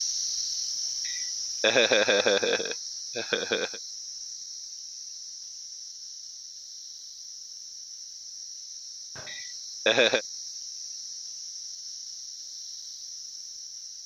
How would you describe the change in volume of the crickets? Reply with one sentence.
The volume of the crickets goes down.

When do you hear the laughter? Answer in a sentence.
The laughter can be heard from 1.1 to 3.8 s and from 9.2 to 10.2 s.